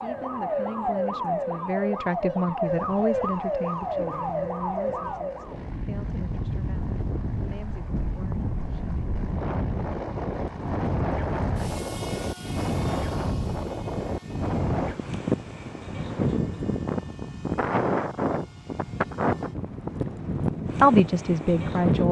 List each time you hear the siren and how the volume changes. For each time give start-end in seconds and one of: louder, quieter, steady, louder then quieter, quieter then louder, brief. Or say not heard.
0.0-5.5 steady.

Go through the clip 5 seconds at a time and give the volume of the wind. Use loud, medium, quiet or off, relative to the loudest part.
off, medium, loud, loud, loud.